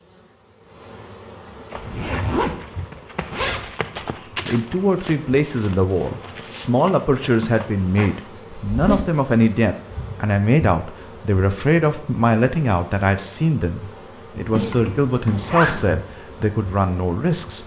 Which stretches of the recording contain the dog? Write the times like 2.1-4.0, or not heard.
not heard.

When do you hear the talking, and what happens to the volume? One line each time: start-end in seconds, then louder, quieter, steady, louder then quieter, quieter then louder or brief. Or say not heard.
4.5-17.6 steady.